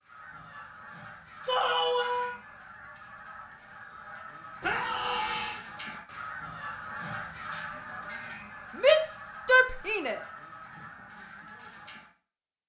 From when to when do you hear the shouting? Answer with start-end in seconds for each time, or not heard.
1.4-2.4, 4.6-5.6, 8.8-10.2.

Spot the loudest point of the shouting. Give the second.
9 s.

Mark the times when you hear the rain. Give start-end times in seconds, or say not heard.
not heard.